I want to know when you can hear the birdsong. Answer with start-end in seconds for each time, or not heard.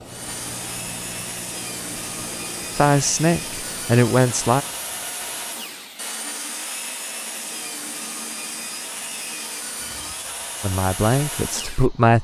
not heard.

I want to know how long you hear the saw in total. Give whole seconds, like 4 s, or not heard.
12 s.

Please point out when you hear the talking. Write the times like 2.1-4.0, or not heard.
2.8-4.7, 10.6-12.2.